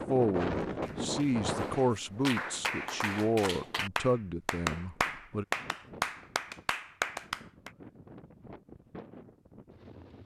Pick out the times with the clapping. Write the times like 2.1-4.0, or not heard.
0.7-7.7.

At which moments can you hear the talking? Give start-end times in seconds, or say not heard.
0.1-5.5.